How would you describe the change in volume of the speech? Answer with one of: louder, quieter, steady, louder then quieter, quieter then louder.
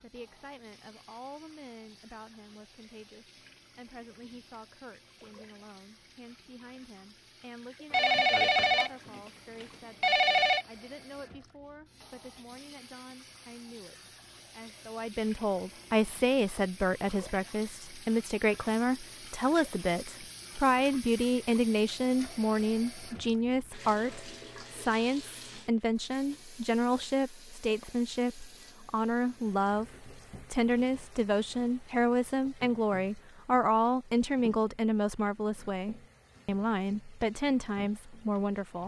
louder.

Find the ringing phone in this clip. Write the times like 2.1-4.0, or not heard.
7.9-10.7.